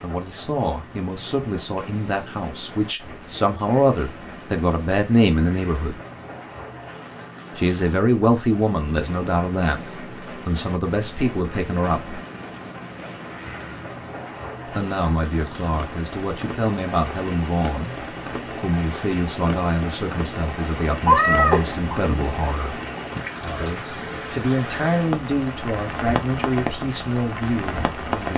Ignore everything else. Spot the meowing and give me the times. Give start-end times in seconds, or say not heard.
21.1-22.6.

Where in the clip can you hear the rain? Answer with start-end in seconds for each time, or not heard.
0.0-28.3.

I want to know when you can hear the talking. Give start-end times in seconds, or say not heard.
0.0-6.0, 7.5-12.2, 14.7-22.8, 23.6-28.3.